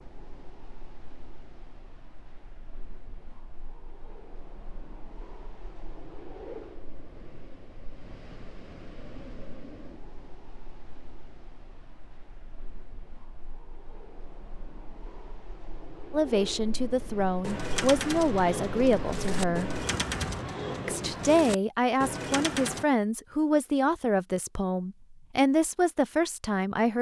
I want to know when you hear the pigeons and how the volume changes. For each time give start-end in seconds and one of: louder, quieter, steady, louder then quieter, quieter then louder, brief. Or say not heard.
17.4-22.9 steady.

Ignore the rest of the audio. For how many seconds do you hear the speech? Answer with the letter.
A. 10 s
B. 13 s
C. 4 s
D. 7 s
A.